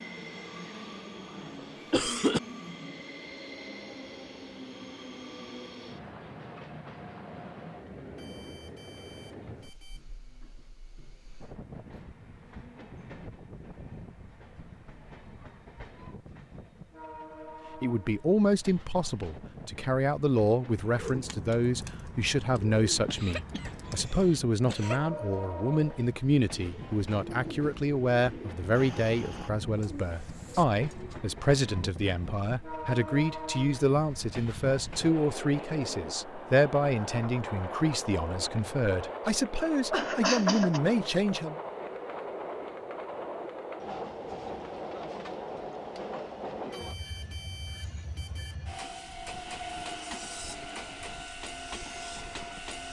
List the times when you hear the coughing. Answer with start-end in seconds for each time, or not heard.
1.9-2.4, 23.1-25.0, 39.9-40.8.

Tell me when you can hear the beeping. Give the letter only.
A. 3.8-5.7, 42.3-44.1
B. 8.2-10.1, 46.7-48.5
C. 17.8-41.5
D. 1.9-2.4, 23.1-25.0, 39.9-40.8
B.